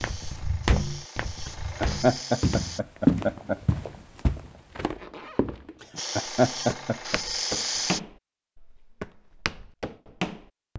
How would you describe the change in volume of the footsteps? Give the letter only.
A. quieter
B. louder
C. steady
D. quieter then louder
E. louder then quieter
E.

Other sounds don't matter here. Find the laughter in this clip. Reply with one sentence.
You can hear the laughter from 1.4 to 3.6 s and from 5.8 to 7.2 s.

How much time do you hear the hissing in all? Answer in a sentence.
The hissing can be heard for 5 seconds in total.